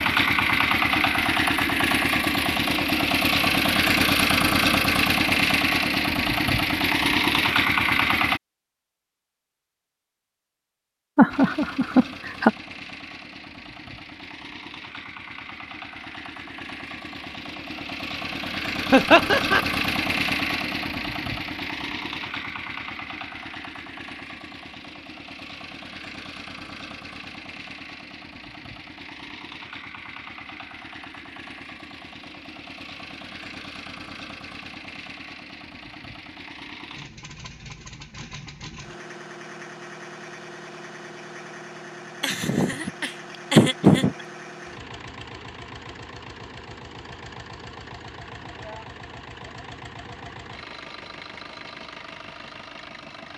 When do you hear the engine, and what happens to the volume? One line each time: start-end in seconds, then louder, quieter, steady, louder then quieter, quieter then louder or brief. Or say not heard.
0.0-8.4 steady
11.3-53.3 quieter.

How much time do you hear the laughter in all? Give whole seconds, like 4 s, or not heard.
4 s.